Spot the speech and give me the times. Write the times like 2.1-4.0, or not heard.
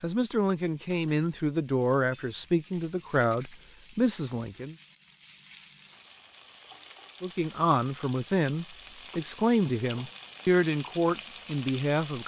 0.0-4.8, 7.2-12.2.